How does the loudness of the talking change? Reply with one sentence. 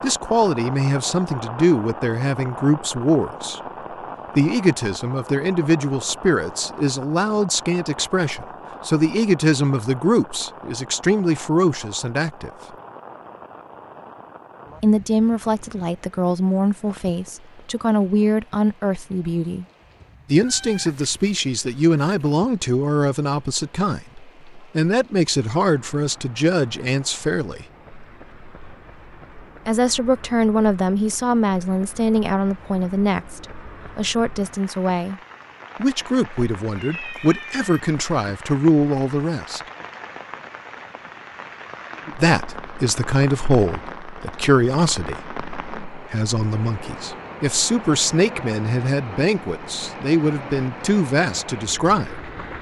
The loudness of the talking stays about the same.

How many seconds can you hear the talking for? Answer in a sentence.
You can hear the talking for 44 seconds altogether.